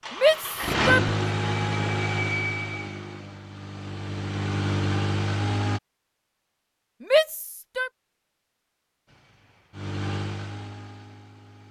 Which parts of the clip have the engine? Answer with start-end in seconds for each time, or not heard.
0.0-5.8, 9.1-11.6.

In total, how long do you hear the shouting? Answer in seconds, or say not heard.
2 s.